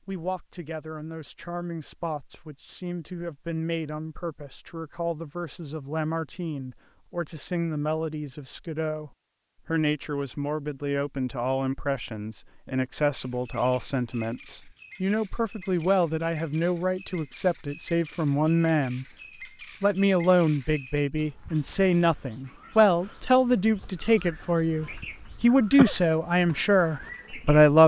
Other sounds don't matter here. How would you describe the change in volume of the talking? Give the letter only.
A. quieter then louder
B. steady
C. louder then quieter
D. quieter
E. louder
E.